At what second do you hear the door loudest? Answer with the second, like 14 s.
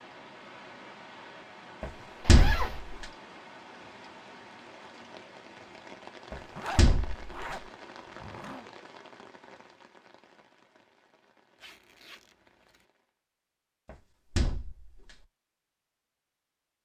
2 s.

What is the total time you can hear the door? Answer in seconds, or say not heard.
4 s.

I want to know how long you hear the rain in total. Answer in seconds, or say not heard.
13 s.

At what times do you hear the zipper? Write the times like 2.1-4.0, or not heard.
2.2-2.8, 6.5-7.6, 8.2-8.7, 11.6-12.8.